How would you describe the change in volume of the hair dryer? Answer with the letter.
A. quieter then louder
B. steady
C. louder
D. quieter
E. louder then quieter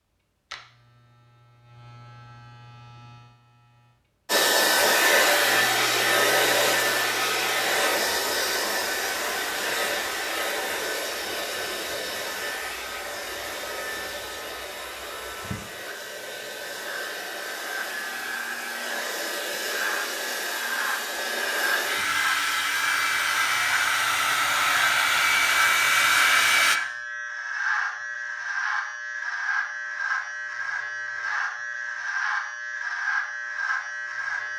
A.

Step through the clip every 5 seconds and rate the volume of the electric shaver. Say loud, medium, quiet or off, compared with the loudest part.
quiet, quiet, quiet, medium, loud, loud, loud.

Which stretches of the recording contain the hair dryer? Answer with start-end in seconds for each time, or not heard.
4.2-26.8.